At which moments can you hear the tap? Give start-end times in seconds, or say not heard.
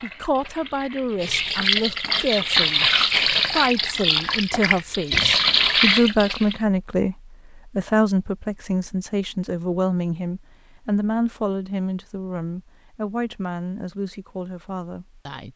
0.0-6.6.